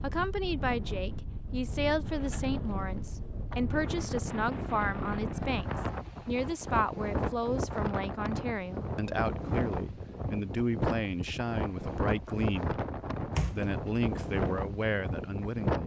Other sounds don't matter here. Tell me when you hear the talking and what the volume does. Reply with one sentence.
You can hear the talking from 0.0 to 15.8 s, at a steady volume.